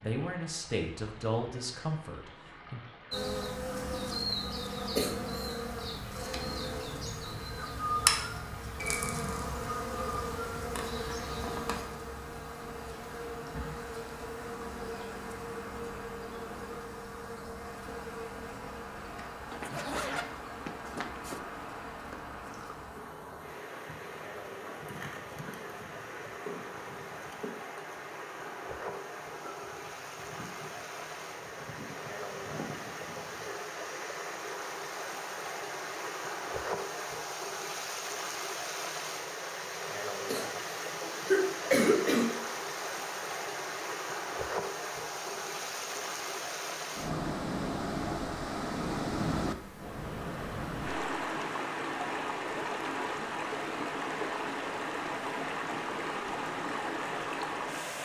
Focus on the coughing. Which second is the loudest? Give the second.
42 s.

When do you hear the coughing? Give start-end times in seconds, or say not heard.
5.0-5.5, 40.2-42.2.